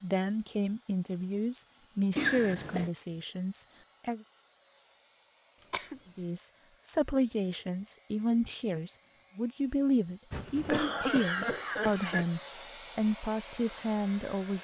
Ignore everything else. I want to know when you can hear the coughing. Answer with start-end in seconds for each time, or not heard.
2.1-2.9, 5.6-6.0, 10.3-12.2.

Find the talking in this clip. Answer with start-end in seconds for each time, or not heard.
0.0-4.2, 6.2-14.5.